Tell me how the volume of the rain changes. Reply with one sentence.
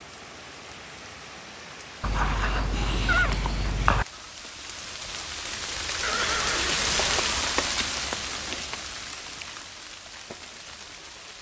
The volume of the rain goes up, then down.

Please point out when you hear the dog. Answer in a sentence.
You can hear the dog from 2.0 to 4.0 s.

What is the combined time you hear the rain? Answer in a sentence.
You can hear the rain for 11 seconds altogether.